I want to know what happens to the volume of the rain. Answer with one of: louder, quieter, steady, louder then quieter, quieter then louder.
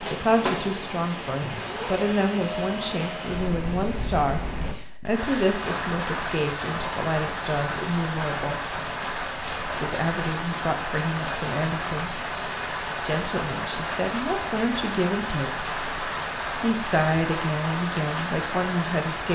steady.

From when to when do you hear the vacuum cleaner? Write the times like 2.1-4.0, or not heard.
0.0-3.5.